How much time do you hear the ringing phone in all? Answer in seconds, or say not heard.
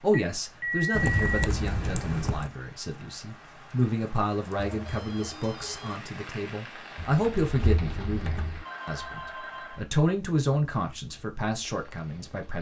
4 s.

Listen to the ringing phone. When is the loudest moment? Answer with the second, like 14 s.
1 s.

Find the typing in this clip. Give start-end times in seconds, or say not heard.
0.9-2.5, 7.0-8.7.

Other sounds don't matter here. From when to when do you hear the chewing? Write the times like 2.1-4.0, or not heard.
not heard.